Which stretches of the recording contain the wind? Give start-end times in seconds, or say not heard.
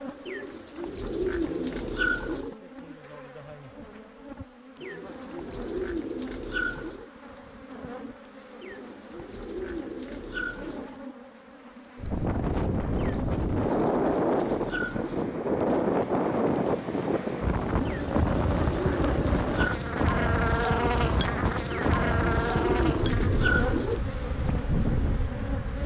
11.9-25.8.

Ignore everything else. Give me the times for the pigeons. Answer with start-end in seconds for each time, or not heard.
0.2-2.5, 4.8-7.1, 8.6-10.9, 12.9-15.3, 17.9-19.8, 21.7-24.0.